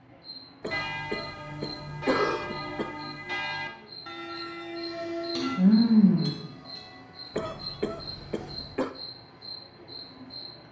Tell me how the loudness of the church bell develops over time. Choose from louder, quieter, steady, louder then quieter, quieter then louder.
quieter.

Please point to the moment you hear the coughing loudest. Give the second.
2 s.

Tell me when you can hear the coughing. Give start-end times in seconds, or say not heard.
0.6-3.0, 7.3-8.9.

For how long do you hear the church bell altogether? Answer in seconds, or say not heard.
7 s.